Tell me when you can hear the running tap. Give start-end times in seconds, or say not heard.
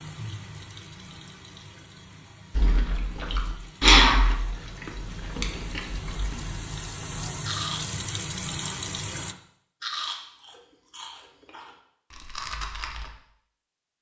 0.0-9.3.